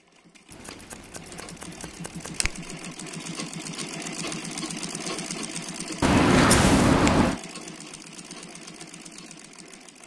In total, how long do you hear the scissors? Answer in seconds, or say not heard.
3 s.